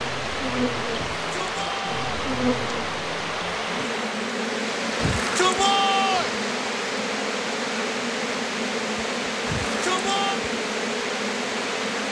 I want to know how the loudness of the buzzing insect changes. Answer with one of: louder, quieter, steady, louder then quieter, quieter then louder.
steady.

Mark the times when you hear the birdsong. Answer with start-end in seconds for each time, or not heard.
not heard.